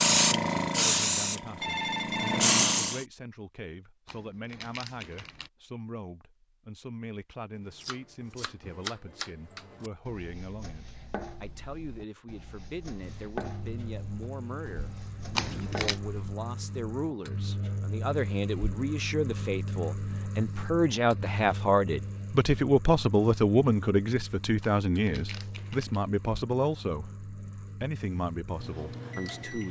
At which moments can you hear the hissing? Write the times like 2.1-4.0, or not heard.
0.0-3.0.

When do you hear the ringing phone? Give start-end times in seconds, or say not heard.
1.6-2.5.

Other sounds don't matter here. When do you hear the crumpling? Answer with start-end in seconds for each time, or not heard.
4.0-5.5, 15.3-16.0, 24.6-26.0.